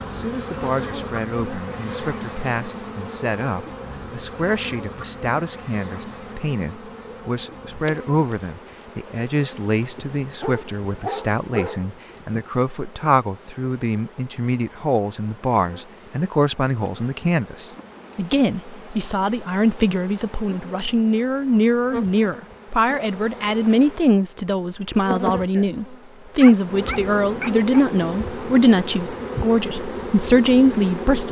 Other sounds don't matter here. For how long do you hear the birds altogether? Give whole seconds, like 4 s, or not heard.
not heard.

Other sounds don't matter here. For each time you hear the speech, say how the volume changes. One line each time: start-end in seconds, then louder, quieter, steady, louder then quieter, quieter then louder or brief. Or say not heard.
0.1-31.2 louder.